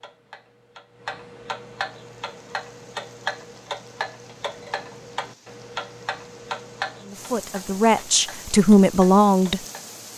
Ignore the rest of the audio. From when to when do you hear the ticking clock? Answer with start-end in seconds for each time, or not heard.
0.0-10.1.